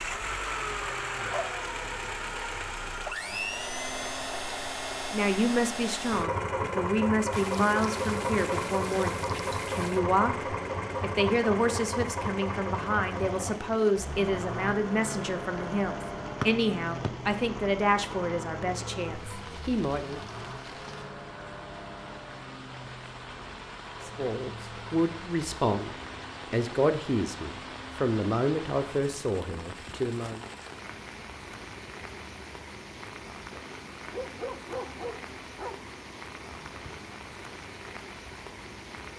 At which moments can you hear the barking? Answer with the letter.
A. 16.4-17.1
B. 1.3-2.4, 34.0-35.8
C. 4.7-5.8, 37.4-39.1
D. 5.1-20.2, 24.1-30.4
B.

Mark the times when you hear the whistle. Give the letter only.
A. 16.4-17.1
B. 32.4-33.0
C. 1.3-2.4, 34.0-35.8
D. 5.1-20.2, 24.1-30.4
A.